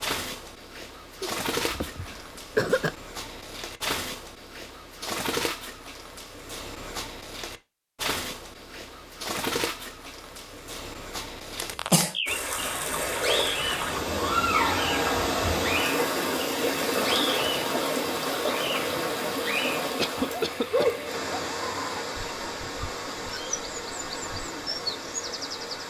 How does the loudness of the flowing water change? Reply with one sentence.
The volume of the flowing water goes down.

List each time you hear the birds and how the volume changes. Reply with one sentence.
The birds can be heard from 0.0 to 25.8 s, at a steady volume.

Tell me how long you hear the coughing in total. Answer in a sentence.
You can hear the coughing for 3 seconds altogether.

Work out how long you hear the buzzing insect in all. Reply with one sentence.
The buzzing insect can't be heard in this clip.